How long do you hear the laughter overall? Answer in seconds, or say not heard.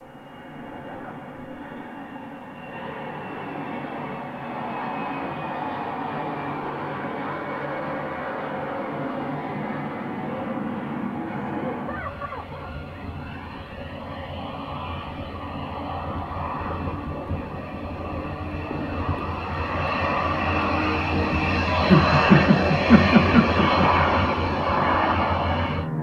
4 s.